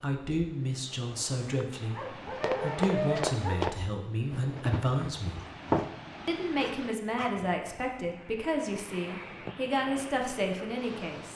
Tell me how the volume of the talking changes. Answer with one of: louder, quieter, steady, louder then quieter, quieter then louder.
steady.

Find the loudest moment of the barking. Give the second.
3 s.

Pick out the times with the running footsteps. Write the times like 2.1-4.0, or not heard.
2.4-5.9.